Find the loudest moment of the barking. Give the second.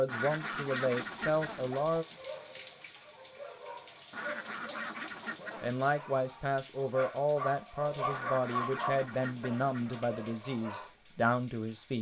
9 s.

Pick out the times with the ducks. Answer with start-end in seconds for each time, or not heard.
0.1-1.8, 4.1-5.8, 8.1-10.1.